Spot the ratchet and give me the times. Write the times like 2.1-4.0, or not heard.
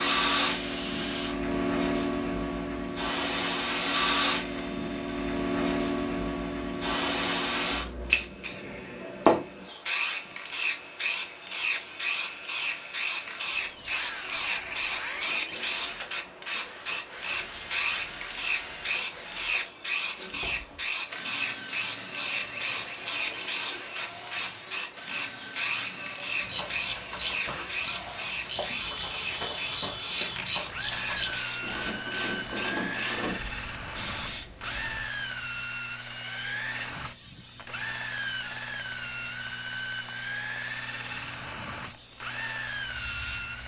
26.4-33.4.